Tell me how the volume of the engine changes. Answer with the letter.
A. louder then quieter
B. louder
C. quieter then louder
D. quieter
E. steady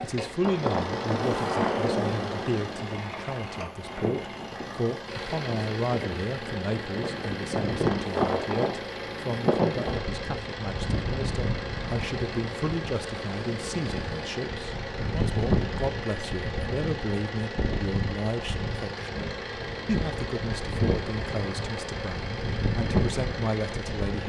E.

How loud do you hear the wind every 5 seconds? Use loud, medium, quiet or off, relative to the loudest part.
loud, loud, medium, loud, loud.